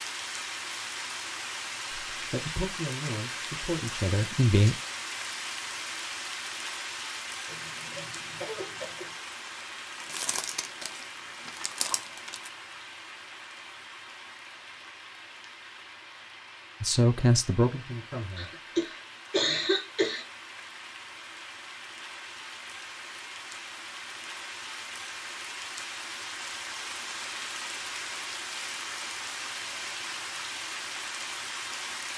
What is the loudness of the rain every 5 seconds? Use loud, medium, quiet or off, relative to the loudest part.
loud, loud, medium, medium, medium, loud, loud.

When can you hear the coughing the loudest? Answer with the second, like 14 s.
20 s.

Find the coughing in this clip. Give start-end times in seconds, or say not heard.
7.5-9.2, 18.4-20.2.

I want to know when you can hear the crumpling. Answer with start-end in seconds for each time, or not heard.
10.0-12.5.